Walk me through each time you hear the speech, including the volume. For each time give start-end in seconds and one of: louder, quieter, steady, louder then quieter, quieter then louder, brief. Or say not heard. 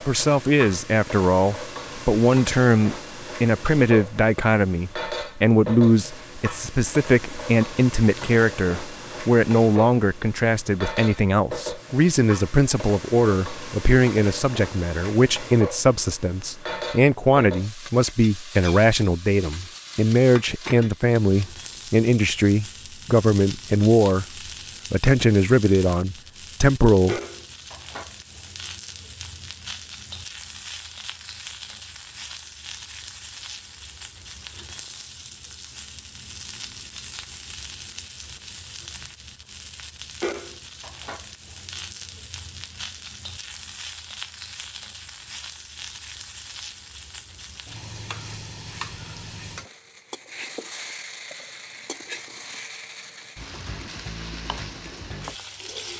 0.1-24.2 steady
24.9-27.2 brief.